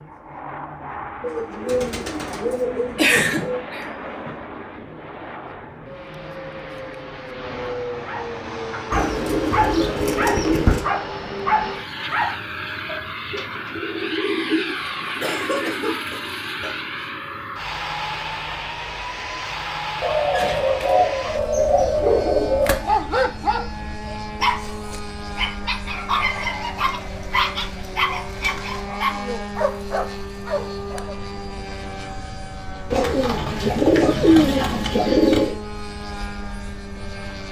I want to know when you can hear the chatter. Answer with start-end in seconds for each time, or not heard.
not heard.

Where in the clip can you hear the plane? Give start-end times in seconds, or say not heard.
0.0-37.4.